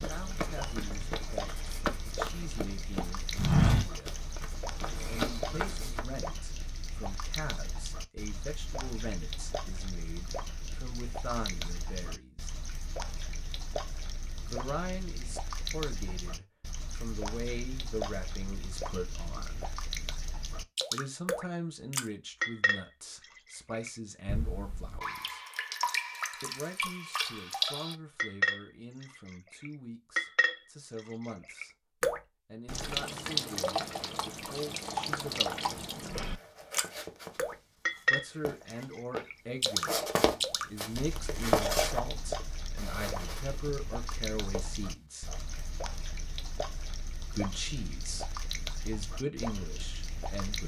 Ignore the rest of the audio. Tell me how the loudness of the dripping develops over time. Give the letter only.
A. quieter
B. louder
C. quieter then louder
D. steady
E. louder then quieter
E.